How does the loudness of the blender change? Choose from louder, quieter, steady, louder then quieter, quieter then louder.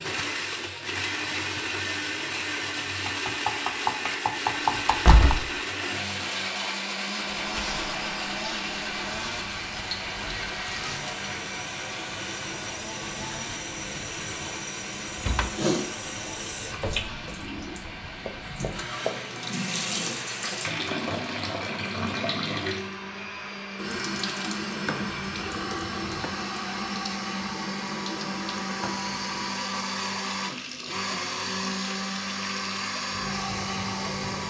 quieter then louder.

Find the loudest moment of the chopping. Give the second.
5 s.